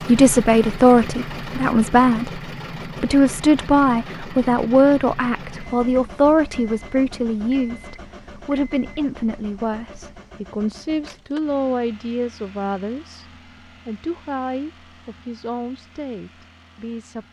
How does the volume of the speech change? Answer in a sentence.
The loudness of the speech goes down.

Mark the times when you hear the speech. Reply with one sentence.
You can hear the speech from 0.1 to 13.2 s and from 13.8 to 17.2 s.